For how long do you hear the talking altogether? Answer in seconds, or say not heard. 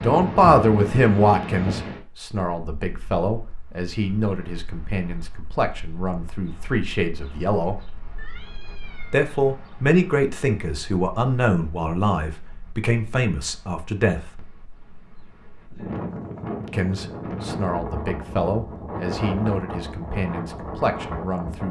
18 s.